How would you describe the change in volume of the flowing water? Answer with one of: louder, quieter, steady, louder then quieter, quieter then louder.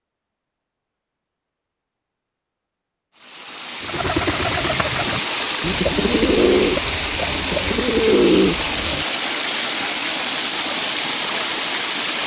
steady.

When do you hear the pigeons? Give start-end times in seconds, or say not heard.
3.8-9.1.